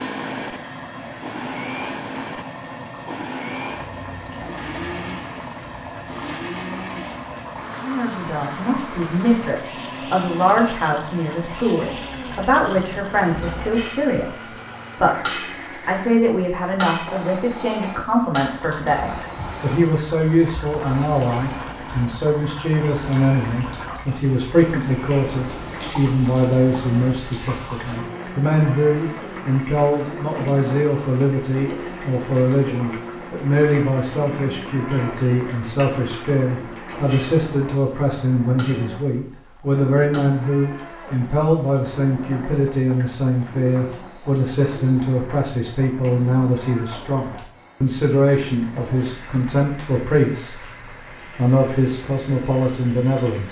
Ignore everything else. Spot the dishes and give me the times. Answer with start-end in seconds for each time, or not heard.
not heard.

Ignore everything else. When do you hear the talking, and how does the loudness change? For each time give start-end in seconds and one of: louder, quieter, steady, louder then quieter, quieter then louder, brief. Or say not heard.
7.8-50.6 steady
51.4-53.4 brief.